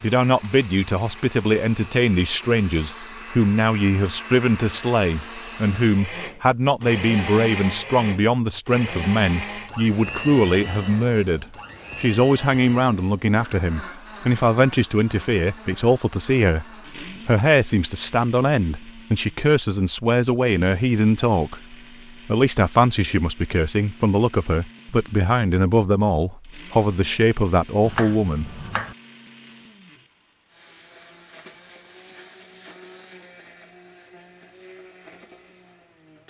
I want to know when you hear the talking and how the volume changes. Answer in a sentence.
You can hear the talking from 0.0 to 16.6 s, at a steady volume; and from 17.2 to 28.6 s, at a steady volume.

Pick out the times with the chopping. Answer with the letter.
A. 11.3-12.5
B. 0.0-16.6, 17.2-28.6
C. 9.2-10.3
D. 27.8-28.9
D.